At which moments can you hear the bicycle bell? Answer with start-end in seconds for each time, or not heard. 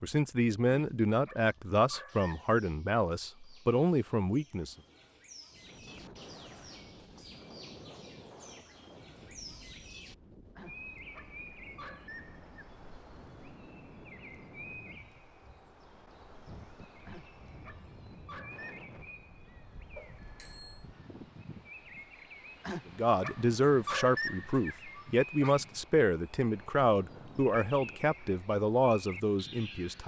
19.9-20.9.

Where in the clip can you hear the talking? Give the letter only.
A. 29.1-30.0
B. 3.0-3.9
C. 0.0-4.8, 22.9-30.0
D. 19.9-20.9
C.